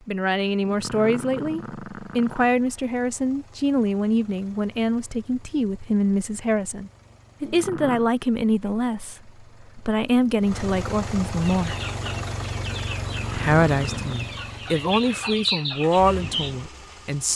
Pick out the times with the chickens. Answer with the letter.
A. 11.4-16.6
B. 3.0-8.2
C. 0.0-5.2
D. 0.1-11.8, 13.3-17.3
A.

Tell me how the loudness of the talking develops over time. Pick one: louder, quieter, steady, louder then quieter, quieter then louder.
steady.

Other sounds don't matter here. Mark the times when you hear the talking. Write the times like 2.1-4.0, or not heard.
0.1-11.8, 13.3-17.3.